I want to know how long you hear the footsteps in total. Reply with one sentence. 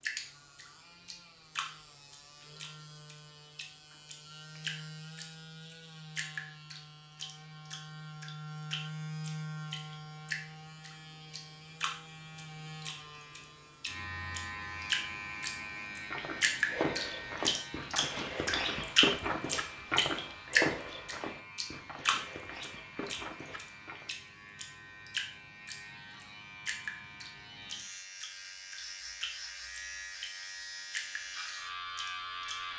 You can hear the footsteps for 8 seconds altogether.